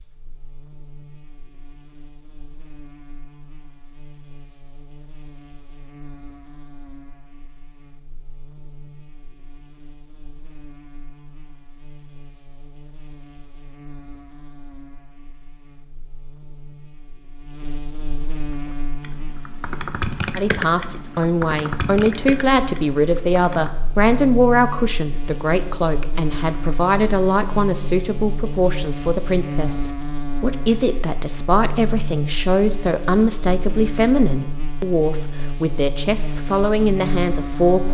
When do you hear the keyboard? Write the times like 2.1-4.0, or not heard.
18.4-23.8.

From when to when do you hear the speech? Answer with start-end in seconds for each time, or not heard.
20.4-37.8.